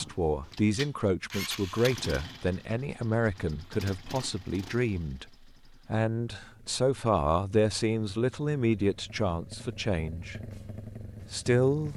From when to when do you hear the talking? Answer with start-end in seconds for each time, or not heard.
0.0-5.2, 5.8-10.4, 11.3-11.9.